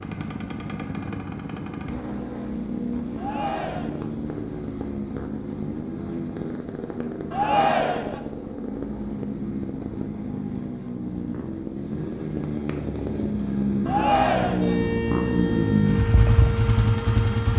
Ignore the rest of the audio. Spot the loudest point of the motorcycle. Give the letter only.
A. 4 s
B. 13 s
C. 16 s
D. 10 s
C.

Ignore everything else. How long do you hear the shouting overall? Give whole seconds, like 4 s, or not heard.
3 s.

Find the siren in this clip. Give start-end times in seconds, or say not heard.
14.6-17.5.